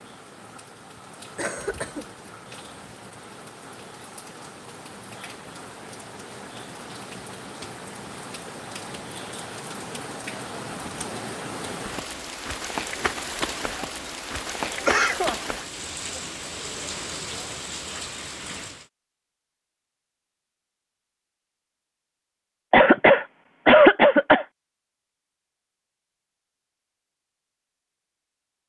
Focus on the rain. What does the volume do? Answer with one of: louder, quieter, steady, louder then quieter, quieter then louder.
louder.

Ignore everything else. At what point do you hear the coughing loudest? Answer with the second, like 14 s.
24 s.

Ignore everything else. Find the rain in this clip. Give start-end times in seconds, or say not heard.
0.0-18.9.